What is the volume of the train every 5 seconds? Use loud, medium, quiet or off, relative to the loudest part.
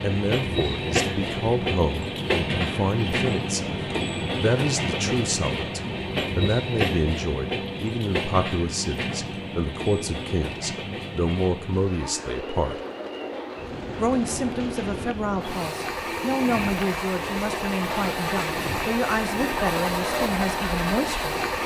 loud, loud, medium, loud, loud.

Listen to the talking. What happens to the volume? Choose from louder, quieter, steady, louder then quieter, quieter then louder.
steady.